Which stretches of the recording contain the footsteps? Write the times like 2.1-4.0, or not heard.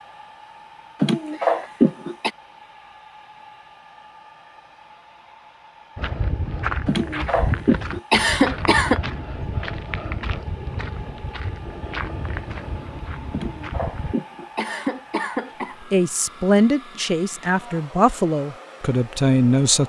6.0-14.2.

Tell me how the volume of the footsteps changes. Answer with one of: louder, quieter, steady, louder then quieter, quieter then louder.
quieter.